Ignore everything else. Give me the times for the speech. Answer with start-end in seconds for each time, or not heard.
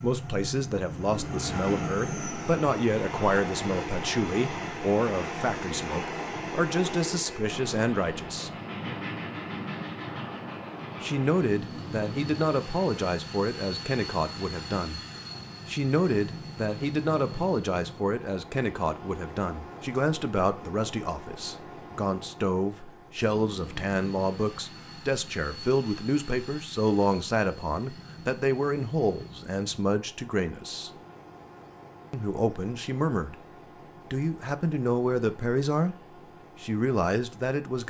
0.0-8.5, 11.0-15.0, 15.7-30.9, 32.1-33.4, 34.1-36.0, 36.6-37.8.